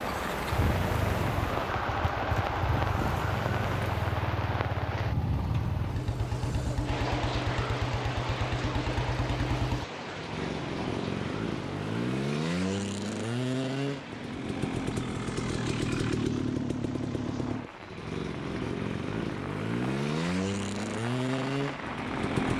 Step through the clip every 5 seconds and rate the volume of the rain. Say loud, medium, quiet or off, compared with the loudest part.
loud, loud, medium, quiet, medium.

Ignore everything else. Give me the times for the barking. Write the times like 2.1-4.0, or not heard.
not heard.